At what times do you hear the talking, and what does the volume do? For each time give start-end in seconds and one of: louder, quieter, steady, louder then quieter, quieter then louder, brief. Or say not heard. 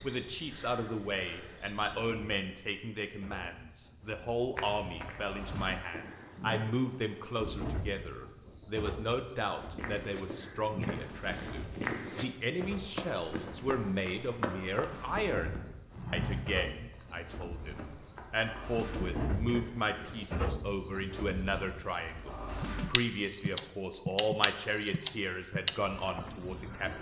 0.0-26.9 steady.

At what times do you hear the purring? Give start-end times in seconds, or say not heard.
not heard.